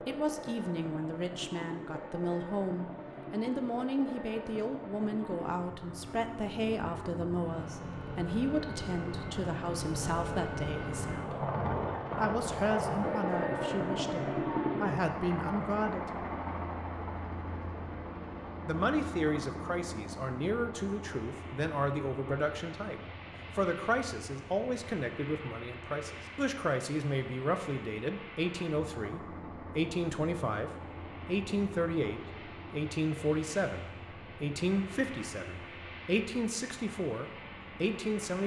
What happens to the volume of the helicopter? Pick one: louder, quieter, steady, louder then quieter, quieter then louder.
louder then quieter.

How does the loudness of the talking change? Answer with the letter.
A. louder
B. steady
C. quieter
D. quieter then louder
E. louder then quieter
B.